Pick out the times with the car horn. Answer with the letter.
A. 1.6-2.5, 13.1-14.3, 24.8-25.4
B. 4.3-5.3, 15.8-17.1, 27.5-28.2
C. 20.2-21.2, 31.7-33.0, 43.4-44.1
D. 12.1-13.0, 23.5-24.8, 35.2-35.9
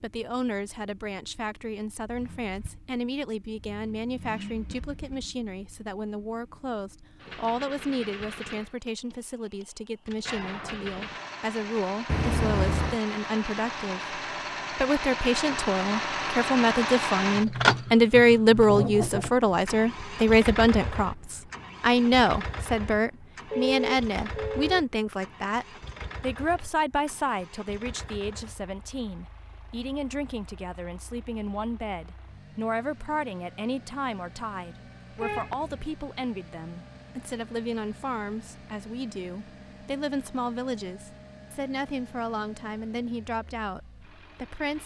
D.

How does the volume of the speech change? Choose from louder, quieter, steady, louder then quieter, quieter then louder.
louder then quieter.